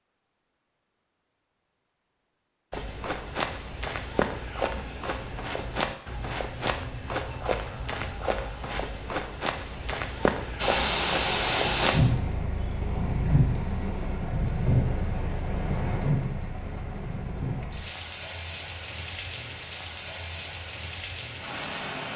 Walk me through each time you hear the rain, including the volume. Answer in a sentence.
You can hear the rain from 10.6 to 22.1 s, getting quieter.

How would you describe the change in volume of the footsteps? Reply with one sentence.
The volume of the footsteps stays about the same.